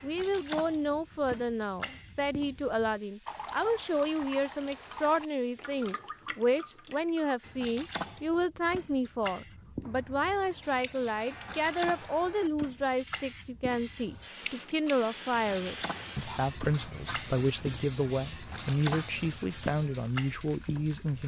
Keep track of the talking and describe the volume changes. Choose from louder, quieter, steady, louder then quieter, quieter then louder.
steady.